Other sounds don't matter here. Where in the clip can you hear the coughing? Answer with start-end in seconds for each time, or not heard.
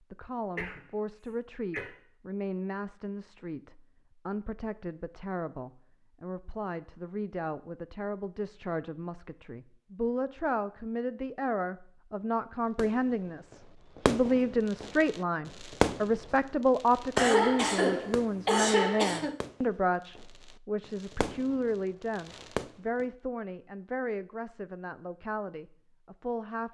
0.6-1.9, 17.1-19.4.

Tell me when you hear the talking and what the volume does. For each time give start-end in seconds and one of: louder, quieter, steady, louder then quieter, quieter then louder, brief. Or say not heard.
0.1-26.6 louder then quieter.